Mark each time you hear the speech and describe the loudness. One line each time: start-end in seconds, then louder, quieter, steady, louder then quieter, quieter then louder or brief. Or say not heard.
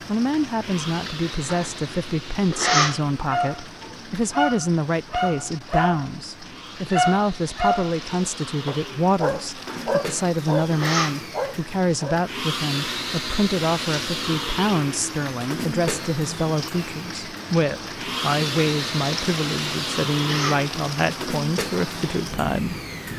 0.1-23.1 steady.